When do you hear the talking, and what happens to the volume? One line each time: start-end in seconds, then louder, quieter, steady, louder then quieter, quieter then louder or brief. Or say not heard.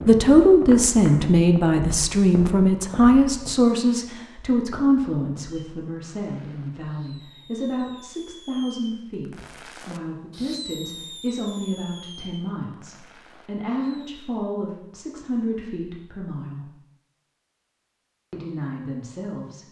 0.1-16.7 quieter
18.3-19.6 brief.